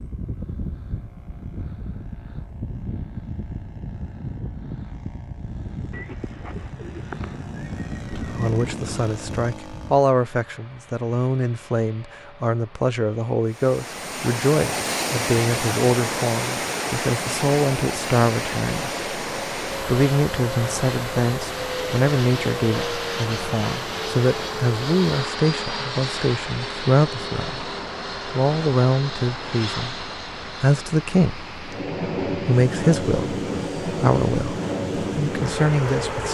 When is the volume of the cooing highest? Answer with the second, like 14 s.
7 s.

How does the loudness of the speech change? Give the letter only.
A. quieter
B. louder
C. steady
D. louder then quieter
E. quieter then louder
C.